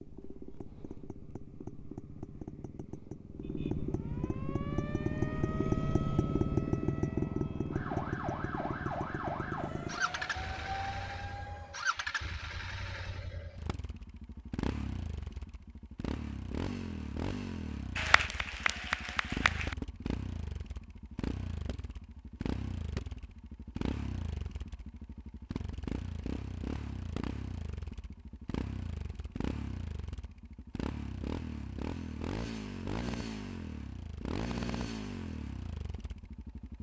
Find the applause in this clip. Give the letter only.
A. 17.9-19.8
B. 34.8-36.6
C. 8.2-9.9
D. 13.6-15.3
A.